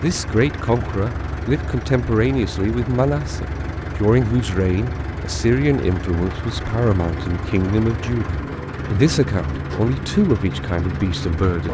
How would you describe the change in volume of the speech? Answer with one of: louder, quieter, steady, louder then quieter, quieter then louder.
steady.